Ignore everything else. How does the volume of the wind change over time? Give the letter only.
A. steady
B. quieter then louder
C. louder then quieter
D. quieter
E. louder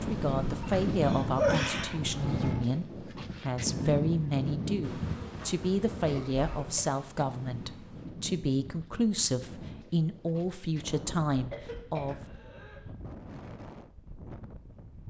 D.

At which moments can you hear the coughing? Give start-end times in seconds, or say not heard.
0.6-2.6, 5.9-6.8, 11.3-12.8.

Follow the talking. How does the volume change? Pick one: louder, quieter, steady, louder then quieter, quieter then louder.
steady.